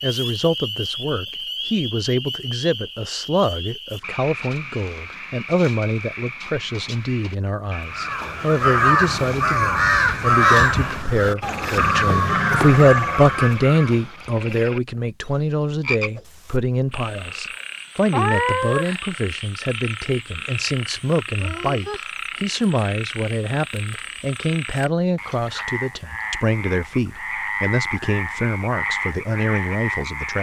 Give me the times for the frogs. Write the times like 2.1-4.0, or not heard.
0.0-30.3.